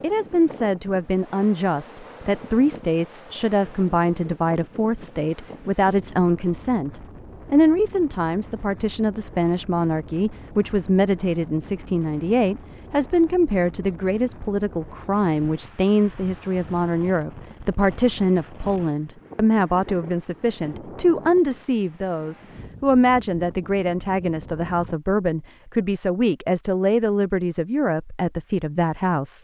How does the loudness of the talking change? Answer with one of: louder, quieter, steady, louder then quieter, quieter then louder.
steady.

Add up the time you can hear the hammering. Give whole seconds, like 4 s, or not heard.
not heard.